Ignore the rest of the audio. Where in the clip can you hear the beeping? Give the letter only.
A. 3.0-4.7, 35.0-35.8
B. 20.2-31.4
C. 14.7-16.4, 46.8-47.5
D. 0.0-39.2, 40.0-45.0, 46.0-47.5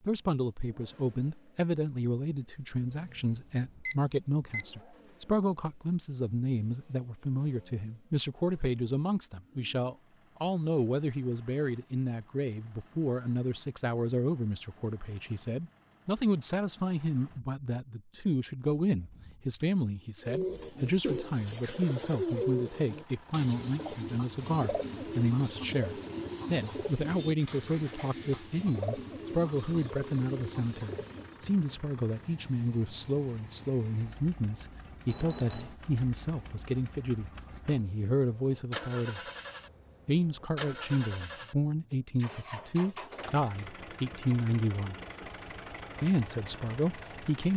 A.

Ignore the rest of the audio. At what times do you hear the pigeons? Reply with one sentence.
You can hear the pigeons from 20.2 to 31.4 s.